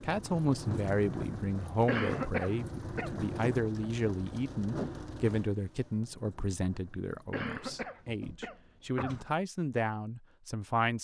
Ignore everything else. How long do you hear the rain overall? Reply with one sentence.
The rain can be heard for 8 seconds in total.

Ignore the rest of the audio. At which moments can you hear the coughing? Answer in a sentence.
The coughing can be heard from 1.9 to 3.1 s and from 7.3 to 9.2 s.